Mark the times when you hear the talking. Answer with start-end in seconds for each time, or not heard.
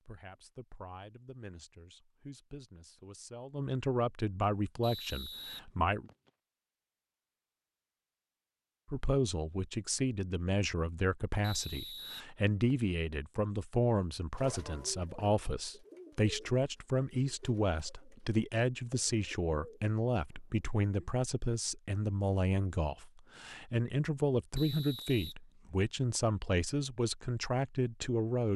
0.1-6.1, 8.8-28.5.